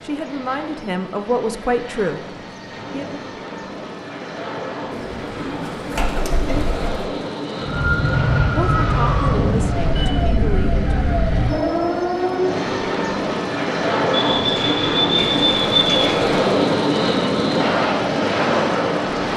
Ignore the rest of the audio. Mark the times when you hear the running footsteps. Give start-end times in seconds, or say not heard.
not heard.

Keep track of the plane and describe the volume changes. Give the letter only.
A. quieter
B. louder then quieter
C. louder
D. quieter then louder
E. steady
C.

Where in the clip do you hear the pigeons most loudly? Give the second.
16 s.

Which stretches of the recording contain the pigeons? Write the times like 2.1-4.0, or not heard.
4.9-7.0, 14.2-16.4.